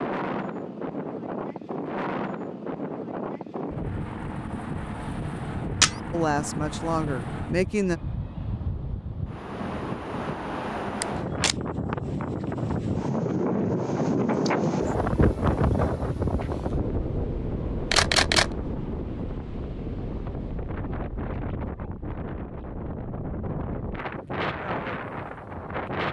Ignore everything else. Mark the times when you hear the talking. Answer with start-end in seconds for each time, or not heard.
6.1-8.0.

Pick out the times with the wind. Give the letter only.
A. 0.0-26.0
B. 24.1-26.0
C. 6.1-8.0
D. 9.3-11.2
A.